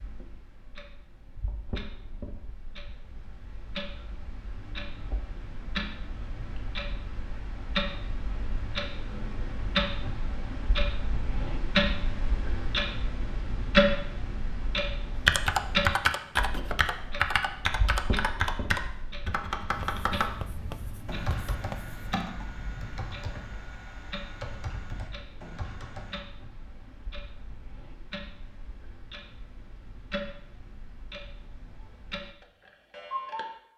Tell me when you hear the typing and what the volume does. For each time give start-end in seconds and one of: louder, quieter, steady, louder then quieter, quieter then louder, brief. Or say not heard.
15.2-26.2 quieter.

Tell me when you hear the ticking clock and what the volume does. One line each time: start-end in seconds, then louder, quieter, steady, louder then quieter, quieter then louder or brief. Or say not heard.
0.0-33.7 louder then quieter.